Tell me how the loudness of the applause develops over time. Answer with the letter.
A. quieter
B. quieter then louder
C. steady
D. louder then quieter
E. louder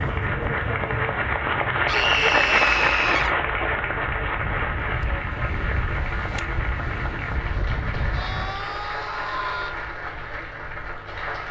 A.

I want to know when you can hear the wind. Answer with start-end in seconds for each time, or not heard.
0.0-8.7.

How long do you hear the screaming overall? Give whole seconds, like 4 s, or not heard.
3 s.